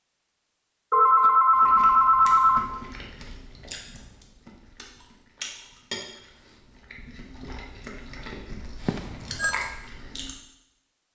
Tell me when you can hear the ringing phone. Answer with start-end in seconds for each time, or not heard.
0.9-2.7, 8.8-9.6.